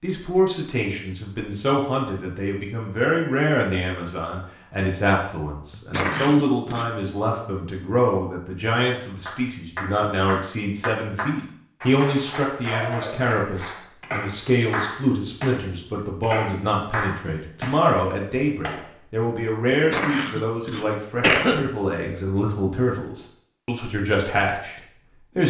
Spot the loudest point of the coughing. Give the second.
21 s.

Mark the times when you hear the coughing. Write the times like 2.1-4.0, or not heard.
5.7-6.8, 19.7-21.7.